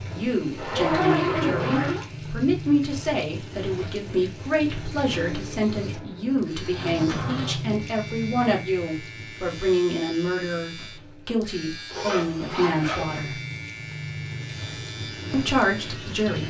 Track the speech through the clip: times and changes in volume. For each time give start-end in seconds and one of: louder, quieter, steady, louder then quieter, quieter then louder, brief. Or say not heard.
0.1-13.4 steady
15.3-16.4 brief.